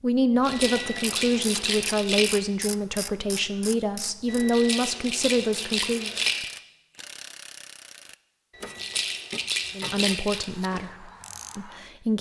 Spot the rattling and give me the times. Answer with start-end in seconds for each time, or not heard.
0.4-2.4, 4.5-6.5, 8.8-10.4.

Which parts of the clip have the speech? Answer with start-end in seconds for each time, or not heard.
0.0-6.1, 9.8-12.1.